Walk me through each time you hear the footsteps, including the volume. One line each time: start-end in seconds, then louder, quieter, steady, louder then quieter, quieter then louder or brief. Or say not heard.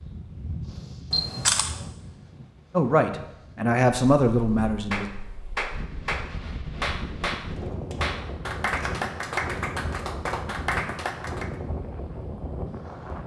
not heard.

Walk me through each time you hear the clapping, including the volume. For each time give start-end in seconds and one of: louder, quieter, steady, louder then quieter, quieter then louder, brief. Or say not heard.
4.9-11.6 steady.